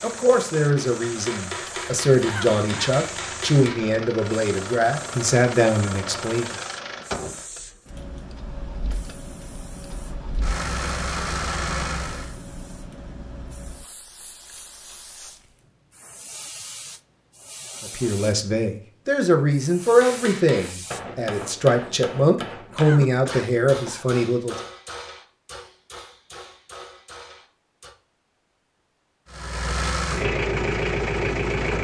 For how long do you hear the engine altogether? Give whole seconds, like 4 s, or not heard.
15 s.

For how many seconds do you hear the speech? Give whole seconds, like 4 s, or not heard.
13 s.